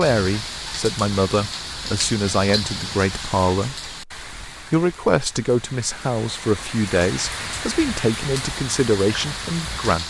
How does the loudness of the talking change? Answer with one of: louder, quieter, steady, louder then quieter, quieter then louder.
steady.